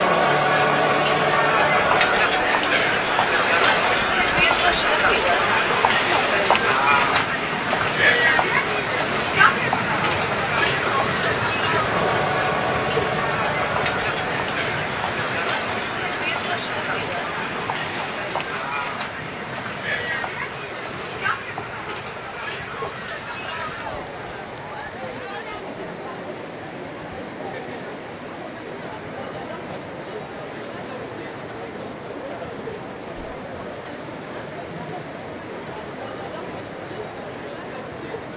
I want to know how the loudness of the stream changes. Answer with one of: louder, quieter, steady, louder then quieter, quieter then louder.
quieter.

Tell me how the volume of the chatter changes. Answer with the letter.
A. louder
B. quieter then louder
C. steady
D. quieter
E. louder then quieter
D.